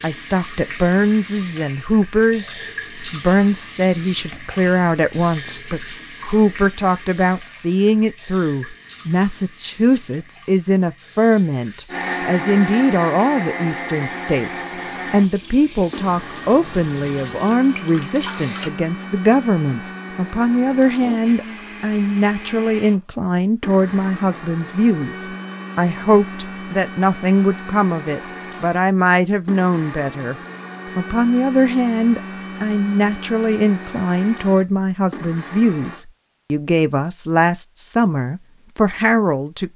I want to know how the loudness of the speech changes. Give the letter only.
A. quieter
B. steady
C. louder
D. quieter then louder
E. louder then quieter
B.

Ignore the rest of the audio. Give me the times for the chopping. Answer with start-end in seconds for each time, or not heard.
not heard.